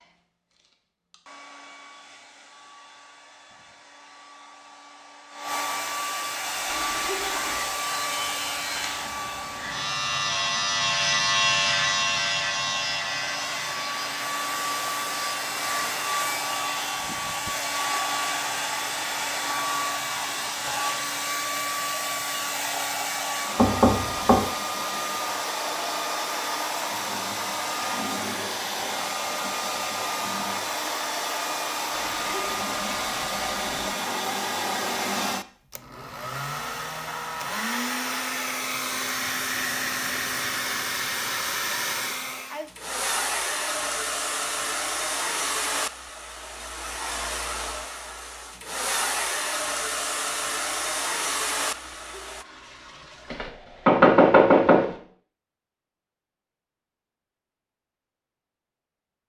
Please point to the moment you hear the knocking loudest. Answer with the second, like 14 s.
54 s.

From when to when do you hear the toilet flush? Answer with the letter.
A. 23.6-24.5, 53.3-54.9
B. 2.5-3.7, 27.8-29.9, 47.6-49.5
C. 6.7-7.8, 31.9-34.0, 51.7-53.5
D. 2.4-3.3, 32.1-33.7
C.